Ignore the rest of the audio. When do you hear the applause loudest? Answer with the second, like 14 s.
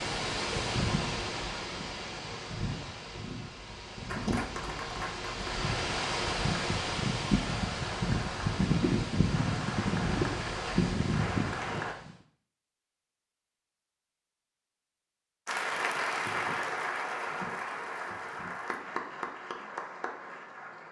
16 s.